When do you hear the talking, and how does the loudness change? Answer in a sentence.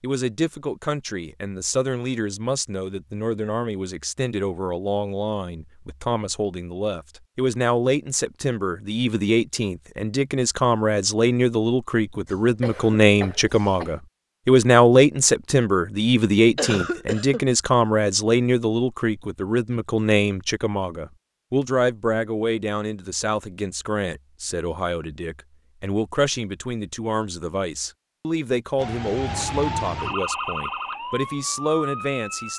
The talking can be heard from 0.0 to 32.5 s, getting louder then quieter.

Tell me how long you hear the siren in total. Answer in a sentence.
You can hear the siren for 4 seconds altogether.